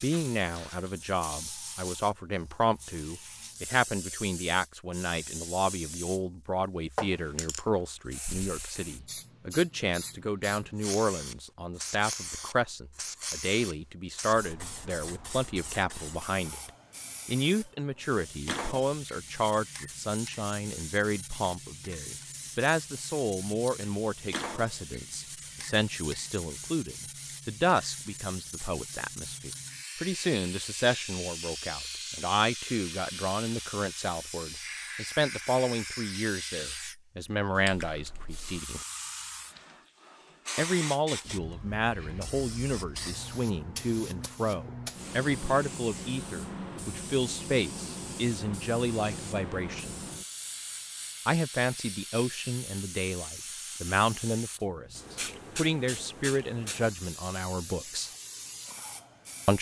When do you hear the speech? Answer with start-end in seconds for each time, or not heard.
0.0-38.8, 40.5-50.0, 51.2-58.1.